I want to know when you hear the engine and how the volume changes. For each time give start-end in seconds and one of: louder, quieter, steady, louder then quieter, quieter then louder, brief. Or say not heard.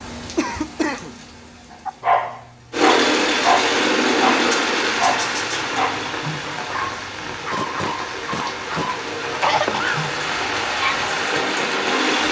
2.7-12.2 quieter then louder.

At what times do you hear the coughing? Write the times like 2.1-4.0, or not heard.
0.3-1.1, 9.3-10.1.